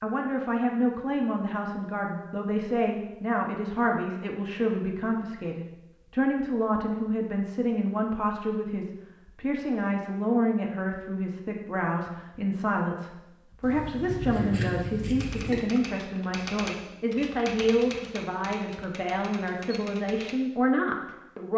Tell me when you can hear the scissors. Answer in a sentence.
You can hear the scissors from 13.6 to 15.6 s.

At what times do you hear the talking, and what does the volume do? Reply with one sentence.
You can hear the talking from 0.0 to 21.5 s, at a steady volume.